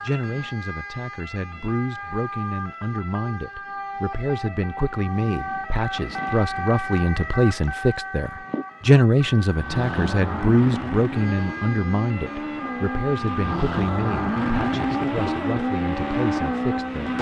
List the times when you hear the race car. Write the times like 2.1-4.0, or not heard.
9.5-17.1.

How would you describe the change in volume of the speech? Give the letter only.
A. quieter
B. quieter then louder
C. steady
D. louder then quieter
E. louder
D.